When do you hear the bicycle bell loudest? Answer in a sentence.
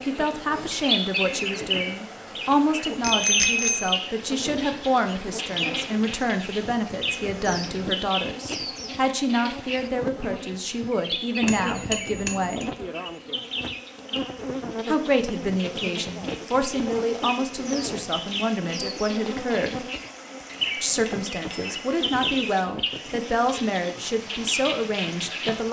The volume of the bicycle bell peaks at 3 seconds.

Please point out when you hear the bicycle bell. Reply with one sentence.
The bicycle bell can be heard from 3.0 to 4.0 s, from 11.4 to 12.7 s and from 21.0 to 21.8 s.